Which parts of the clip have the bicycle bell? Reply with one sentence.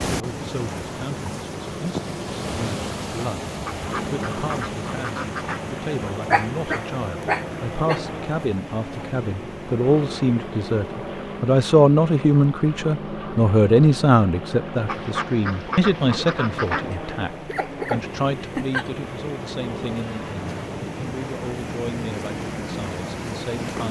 The bicycle bell can't be heard in this clip.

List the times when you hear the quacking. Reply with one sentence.
The quacking can be heard from 3.6 to 5.7 s and from 14.8 to 16.9 s.